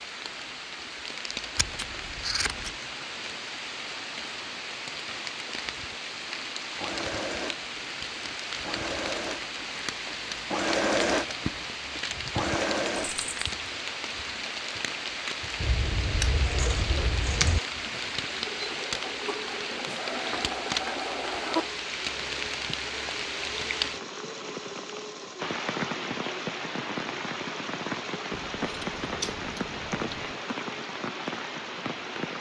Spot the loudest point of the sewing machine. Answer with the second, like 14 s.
11 s.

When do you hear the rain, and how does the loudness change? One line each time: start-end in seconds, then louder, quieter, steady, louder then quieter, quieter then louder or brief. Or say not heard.
0.0-32.3 steady.